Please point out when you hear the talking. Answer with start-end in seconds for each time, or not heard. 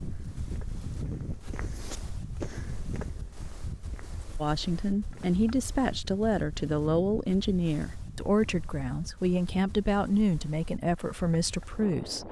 4.3-12.2.